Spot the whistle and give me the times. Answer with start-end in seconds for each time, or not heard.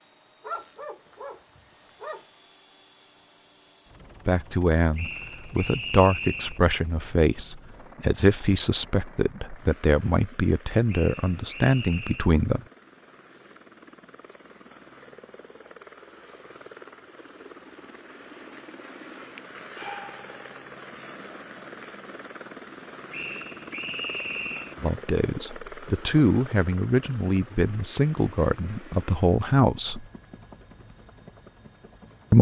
5.0-6.6, 10.8-12.3, 23.1-24.8.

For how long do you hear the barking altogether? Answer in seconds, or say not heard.
3 s.